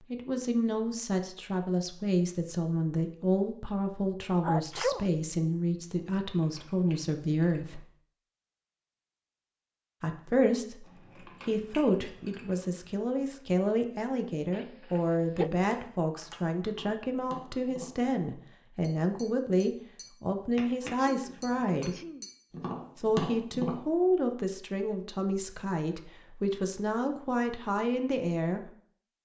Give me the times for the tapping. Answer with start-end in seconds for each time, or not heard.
15.6-23.8.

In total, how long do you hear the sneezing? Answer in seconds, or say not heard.
3 s.